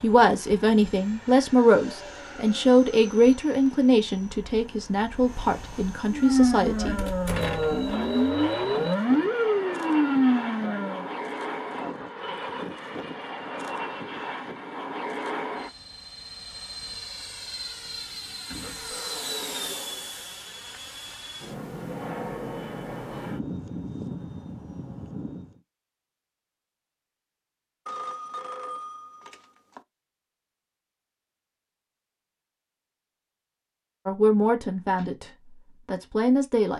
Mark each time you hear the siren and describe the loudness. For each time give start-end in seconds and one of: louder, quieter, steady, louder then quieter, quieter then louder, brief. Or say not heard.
6.1-11.1 louder.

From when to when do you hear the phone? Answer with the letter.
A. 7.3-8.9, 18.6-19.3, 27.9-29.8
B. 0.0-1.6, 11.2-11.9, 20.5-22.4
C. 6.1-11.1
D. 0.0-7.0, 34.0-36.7
A.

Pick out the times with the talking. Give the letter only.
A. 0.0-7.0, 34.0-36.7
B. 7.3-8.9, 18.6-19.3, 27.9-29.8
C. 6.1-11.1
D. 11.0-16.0
A.